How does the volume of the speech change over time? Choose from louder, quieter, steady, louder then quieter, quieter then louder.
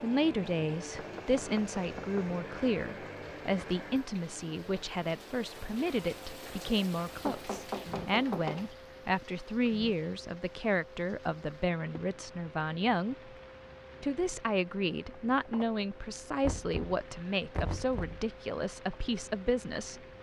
steady.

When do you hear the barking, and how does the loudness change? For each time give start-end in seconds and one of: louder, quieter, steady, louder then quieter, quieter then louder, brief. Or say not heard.
not heard.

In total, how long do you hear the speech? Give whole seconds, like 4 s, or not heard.
19 s.